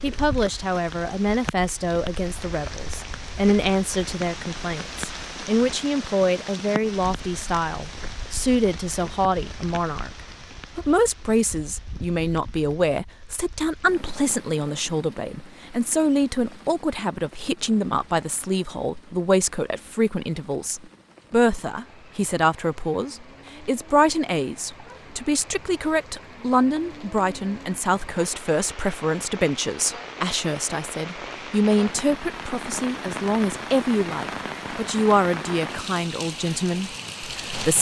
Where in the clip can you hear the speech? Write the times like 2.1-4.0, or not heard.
0.0-10.1, 10.8-37.7.